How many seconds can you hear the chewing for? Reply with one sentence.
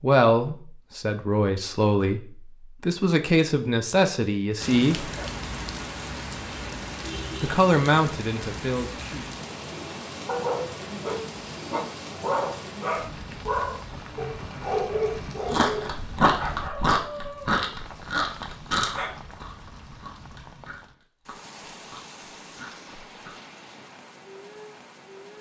The chewing can be heard for 8 seconds in total.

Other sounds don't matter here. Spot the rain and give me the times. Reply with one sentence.
The rain can be heard from 4.6 to 25.3 s.